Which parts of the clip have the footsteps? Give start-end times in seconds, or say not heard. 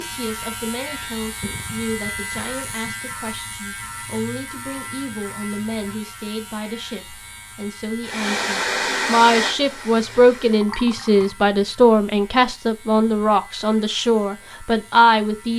not heard.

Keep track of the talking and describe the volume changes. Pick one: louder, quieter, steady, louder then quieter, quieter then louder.
louder.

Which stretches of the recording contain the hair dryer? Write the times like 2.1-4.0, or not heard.
8.0-10.7.